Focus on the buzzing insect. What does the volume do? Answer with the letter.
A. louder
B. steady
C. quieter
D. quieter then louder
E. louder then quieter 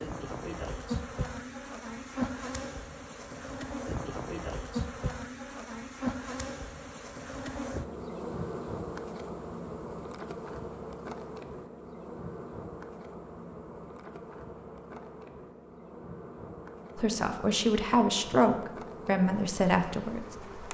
C.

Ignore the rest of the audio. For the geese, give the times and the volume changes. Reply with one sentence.
You can't hear the geese here.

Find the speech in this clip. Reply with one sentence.
You can hear the speech from 16.9 to 20.4 s.